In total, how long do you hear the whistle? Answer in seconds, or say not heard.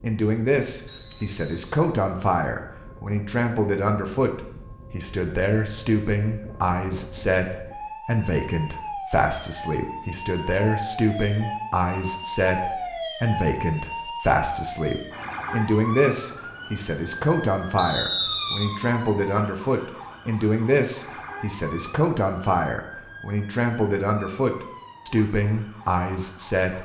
2 s.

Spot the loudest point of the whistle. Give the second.
18 s.